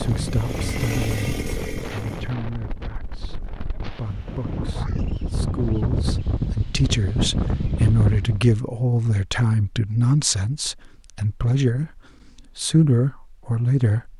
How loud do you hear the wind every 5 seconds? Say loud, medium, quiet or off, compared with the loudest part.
medium, loud, off.